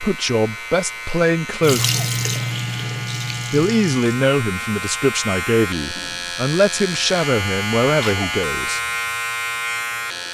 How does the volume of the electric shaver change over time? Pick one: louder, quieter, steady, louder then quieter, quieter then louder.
louder.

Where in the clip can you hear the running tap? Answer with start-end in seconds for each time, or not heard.
1.6-4.2.